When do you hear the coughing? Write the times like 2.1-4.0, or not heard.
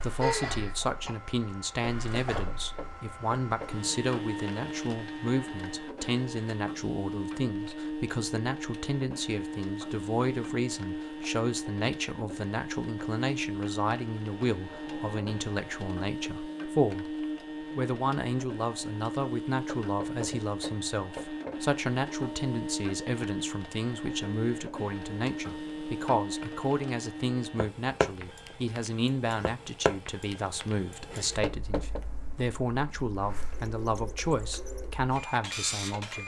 0.2-1.1.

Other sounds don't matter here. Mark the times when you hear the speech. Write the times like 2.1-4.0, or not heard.
0.0-36.2.